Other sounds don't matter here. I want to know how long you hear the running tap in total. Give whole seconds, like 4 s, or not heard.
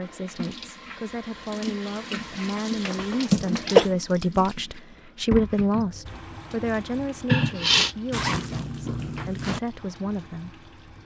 11 s.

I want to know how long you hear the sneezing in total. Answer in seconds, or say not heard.
2 s.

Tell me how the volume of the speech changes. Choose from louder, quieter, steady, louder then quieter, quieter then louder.
louder then quieter.